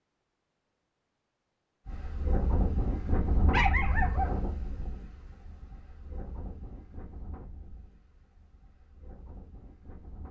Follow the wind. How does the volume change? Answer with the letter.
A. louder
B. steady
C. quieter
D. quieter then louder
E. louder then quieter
C.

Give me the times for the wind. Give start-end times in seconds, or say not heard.
1.9-10.2.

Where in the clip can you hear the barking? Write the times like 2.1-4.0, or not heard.
3.4-4.8.